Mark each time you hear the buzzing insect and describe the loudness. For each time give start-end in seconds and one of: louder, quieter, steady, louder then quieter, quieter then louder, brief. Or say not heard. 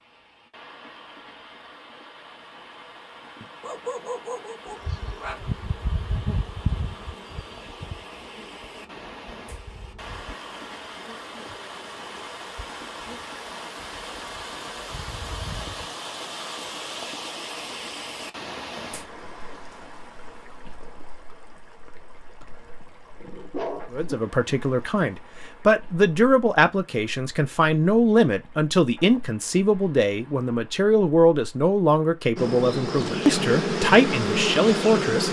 4.7-15.9 quieter
32.4-35.2 brief.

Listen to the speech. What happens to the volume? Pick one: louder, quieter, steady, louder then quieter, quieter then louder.
steady.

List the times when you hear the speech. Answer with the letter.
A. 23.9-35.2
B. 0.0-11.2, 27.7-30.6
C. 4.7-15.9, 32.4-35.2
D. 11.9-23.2
A.